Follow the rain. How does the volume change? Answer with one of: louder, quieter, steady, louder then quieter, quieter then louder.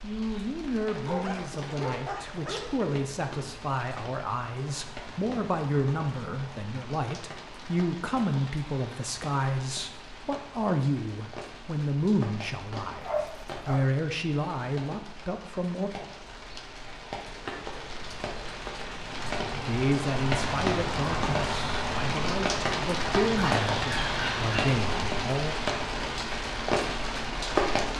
louder.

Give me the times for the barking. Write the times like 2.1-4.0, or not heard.
1.1-2.8, 13.0-13.9, 23.1-24.7.